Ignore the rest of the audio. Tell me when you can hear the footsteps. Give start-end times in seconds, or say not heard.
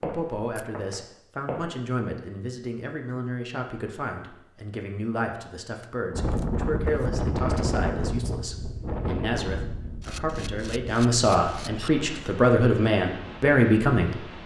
0.0-1.8.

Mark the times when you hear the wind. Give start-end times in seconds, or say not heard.
6.1-14.4.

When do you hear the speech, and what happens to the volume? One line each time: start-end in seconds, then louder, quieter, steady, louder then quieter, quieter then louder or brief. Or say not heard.
0.0-14.2 louder.